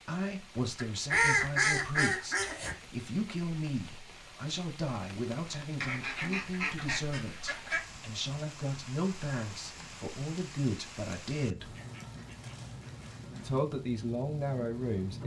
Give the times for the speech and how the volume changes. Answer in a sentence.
The speech can be heard from 0.1 to 11.8 s, at a steady volume; and briefly from 13.4 to 15.2 s.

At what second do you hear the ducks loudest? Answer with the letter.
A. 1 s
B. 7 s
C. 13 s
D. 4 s
A.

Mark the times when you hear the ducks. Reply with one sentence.
You can hear the ducks from 0.8 to 2.8 s, from 5.8 to 7.8 s and from 11.6 to 13.6 s.